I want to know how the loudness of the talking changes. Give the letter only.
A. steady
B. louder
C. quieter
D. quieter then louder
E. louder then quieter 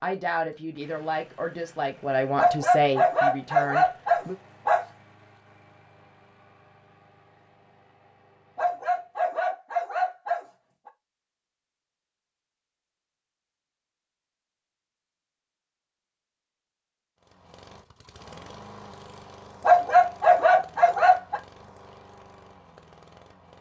E.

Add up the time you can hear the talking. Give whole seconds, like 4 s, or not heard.
4 s.